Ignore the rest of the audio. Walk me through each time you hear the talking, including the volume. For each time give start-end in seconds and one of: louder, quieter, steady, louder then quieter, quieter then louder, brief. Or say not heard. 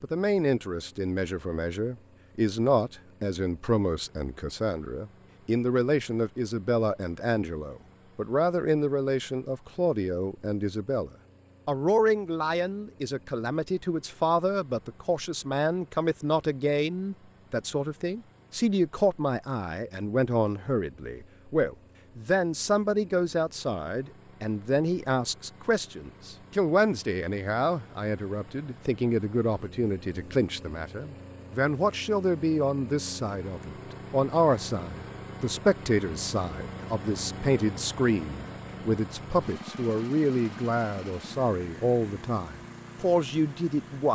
0.0-44.1 steady.